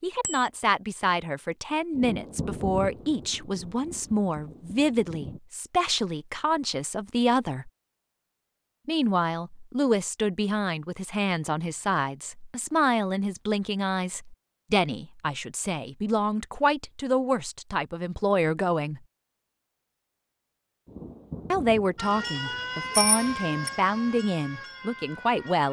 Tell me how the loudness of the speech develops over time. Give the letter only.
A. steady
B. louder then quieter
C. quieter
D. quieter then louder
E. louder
A.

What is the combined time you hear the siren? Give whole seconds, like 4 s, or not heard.
4 s.